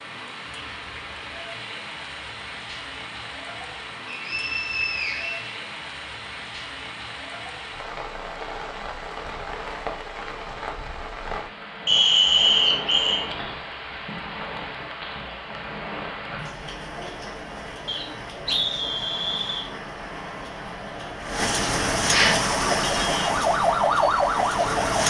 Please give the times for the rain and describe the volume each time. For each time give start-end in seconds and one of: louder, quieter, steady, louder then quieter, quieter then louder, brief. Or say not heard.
0.0-25.0 louder.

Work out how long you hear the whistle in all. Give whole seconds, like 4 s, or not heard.
5 s.